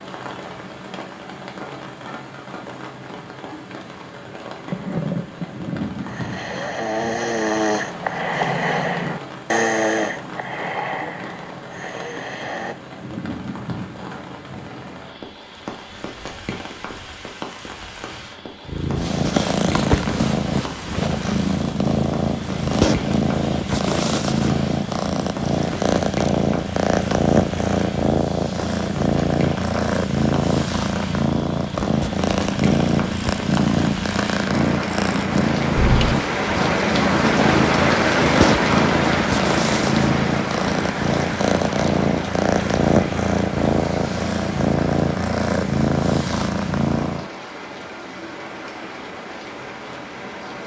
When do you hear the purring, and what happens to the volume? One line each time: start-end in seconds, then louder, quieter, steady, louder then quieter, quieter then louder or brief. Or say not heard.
18.6-47.3 steady.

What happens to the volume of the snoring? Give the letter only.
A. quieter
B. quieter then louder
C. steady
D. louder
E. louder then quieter
E.